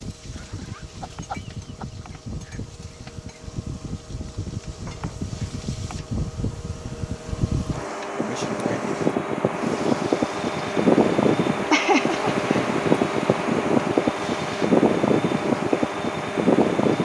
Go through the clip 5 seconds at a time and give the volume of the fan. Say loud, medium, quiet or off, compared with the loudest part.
quiet, medium, loud, loud.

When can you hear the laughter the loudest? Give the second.
12 s.